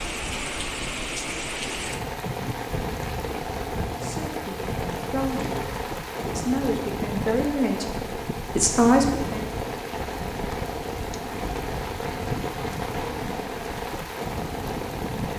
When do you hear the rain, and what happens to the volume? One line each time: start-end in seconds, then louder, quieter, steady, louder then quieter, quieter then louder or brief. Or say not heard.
0.0-15.3 steady.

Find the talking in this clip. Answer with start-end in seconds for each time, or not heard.
4.0-9.4.